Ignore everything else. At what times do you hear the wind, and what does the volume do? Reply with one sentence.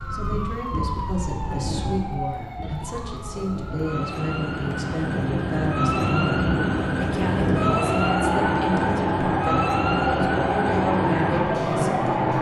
You can hear the wind from 0.0 to 12.3 s, getting louder.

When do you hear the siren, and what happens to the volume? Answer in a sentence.
The siren can be heard from 0.0 to 12.3 s, getting louder.